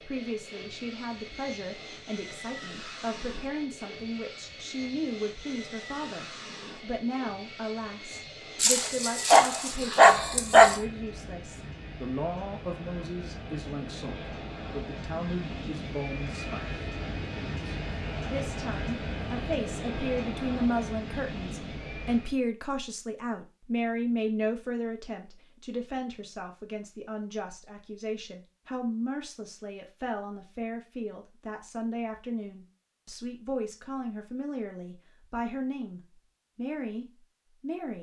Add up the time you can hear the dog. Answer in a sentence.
You can hear the dog for 2 seconds altogether.